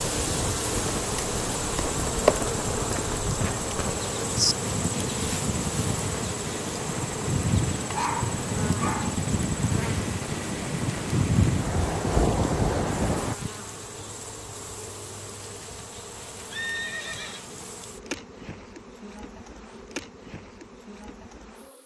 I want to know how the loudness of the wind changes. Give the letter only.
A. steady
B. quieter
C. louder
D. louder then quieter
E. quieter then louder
C.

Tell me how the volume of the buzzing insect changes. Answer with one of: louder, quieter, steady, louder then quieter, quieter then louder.
quieter.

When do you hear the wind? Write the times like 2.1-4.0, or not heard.
0.0-13.3.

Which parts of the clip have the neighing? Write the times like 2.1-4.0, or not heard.
3.7-4.5, 16.5-17.4.